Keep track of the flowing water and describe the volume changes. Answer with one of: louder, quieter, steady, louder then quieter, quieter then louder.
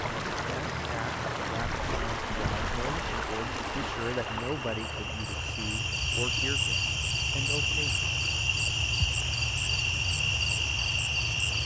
quieter.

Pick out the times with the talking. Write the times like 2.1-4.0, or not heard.
0.0-8.0.